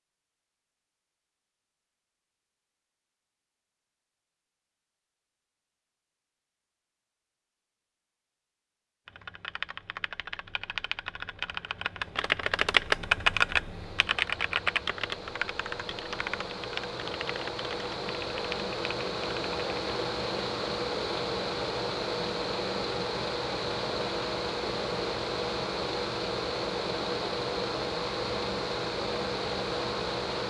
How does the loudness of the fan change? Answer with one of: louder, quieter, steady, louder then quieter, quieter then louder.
louder.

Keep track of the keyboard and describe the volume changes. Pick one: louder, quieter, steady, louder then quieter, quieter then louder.
louder then quieter.